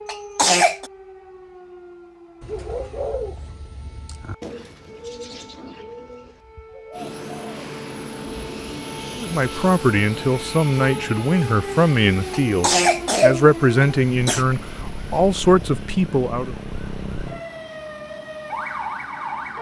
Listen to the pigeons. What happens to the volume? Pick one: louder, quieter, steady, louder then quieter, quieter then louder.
quieter.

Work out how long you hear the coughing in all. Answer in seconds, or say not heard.
3 s.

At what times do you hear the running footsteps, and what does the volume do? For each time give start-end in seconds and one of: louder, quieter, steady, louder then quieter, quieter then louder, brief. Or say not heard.
not heard.